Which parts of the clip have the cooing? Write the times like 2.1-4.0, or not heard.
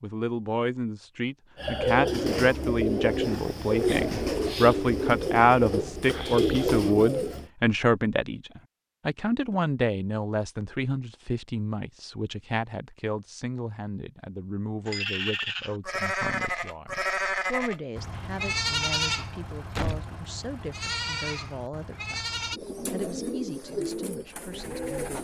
1.6-7.5, 22.5-25.1.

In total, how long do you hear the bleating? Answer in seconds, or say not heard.
8 s.